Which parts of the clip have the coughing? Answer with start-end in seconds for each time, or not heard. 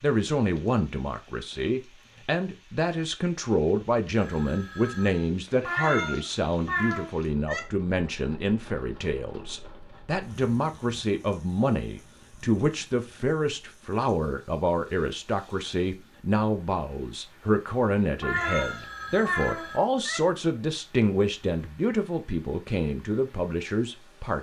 not heard.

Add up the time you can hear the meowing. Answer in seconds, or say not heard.
4 s.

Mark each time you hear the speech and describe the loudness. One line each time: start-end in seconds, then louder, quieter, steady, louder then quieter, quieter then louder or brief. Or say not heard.
0.0-24.3 steady.